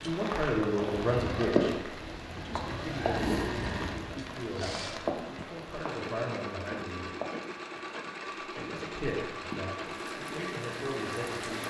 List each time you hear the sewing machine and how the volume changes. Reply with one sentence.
The sewing machine can be heard from 0.0 to 11.6 s, at a steady volume.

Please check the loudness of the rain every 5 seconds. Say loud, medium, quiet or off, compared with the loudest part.
loud, medium, medium.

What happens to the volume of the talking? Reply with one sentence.
The volume of the talking goes down.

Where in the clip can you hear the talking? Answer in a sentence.
The talking can be heard from 0.0 to 7.1 s and from 8.4 to 11.6 s.